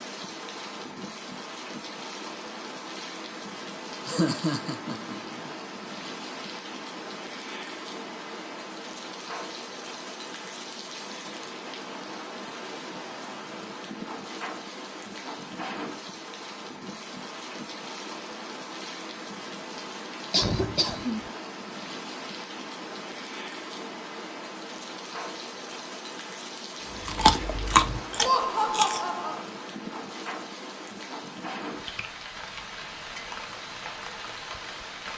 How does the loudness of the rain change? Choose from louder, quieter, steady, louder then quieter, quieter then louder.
steady.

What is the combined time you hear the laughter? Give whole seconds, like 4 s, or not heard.
4 s.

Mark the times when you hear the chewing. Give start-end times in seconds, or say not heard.
27.1-29.0.